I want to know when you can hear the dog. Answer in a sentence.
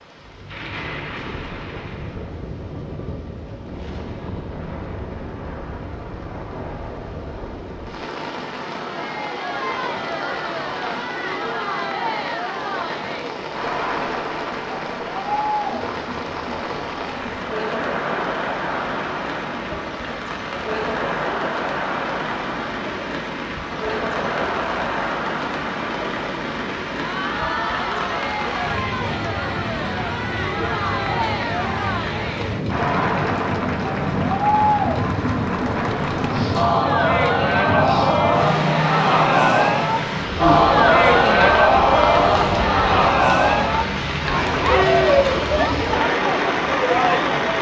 You can't hear the dog here.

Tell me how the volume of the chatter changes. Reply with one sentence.
The loudness of the chatter goes up.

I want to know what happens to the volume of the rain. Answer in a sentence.
The volume of the rain goes up.